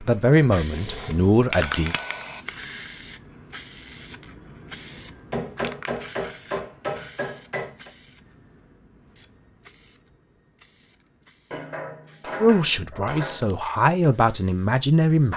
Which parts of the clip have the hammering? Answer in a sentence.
The hammering can be heard from 0.7 to 2.4 s, from 5.3 to 7.9 s and from 11.5 to 13.5 s.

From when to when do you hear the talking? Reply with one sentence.
The talking can be heard from 0.0 to 1.9 s and from 12.4 to 15.3 s.